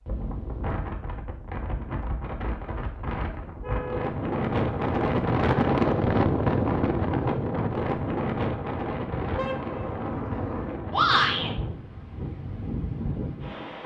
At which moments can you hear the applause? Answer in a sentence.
The applause can't be heard in this clip.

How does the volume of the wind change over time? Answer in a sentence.
The volume of the wind goes up, then down.